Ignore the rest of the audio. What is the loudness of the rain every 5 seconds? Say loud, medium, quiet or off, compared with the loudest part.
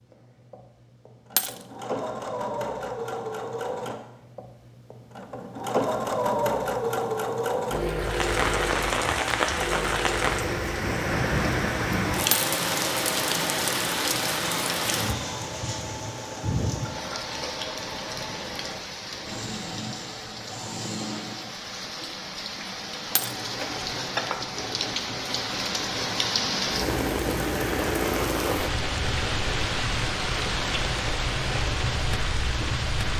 off, loud, loud, medium, medium, loud, loud.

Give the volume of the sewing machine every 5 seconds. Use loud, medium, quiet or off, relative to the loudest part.
medium, loud, medium, medium, medium, medium, medium.